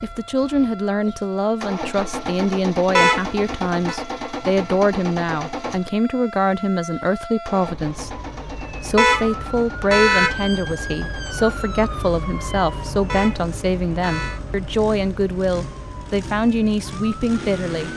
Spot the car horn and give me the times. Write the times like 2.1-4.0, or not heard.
3.0-4.0, 8.9-10.3, 13.1-14.4.